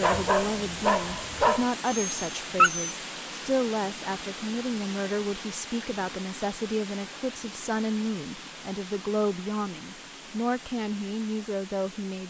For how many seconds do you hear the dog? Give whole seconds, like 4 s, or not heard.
3 s.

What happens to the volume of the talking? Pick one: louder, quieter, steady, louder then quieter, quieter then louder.
steady.